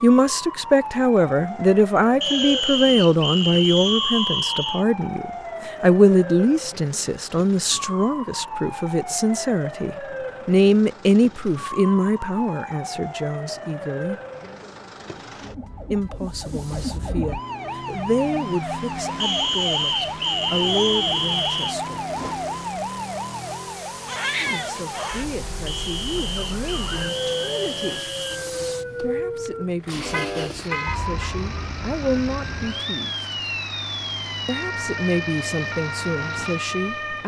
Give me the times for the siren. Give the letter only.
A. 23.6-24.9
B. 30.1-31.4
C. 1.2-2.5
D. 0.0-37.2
D.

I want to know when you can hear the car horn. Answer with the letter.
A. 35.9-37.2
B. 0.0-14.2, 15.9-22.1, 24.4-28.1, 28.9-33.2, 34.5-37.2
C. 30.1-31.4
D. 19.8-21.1
C.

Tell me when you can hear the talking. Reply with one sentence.
The talking can be heard from 0.0 to 14.2 s, from 15.9 to 22.1 s, from 24.4 to 28.1 s, from 28.9 to 33.2 s and from 34.5 to 37.2 s.